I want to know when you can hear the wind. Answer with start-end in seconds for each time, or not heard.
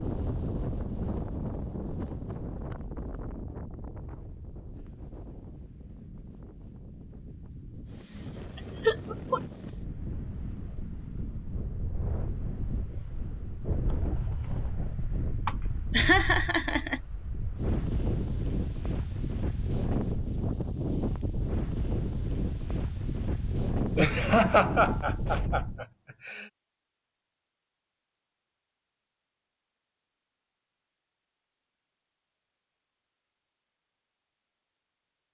0.0-25.9.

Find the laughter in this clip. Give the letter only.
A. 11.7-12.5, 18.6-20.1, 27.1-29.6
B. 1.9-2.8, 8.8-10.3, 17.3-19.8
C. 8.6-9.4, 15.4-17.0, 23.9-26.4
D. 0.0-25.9
C.